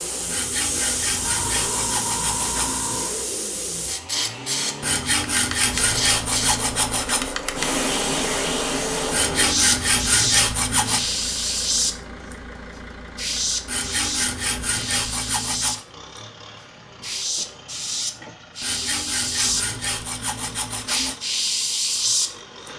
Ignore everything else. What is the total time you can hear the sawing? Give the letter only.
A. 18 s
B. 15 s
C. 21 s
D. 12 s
D.